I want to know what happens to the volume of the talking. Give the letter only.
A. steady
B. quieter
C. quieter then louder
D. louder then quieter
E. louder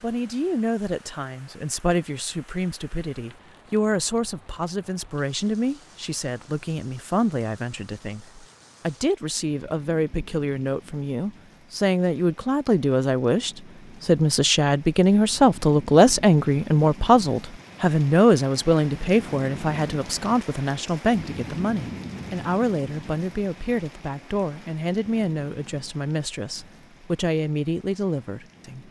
D.